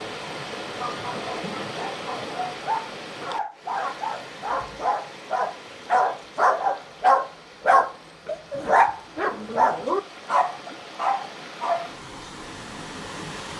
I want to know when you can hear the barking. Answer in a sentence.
The barking can be heard from 0.7 to 12.3 s.